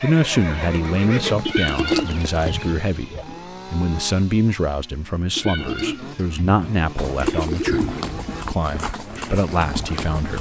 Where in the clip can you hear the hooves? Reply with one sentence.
The hooves can be heard from 0.0 to 2.7 s and from 7.0 to 10.3 s.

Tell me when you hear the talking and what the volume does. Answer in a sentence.
You can hear the talking from 0.0 to 10.3 s, at a steady volume.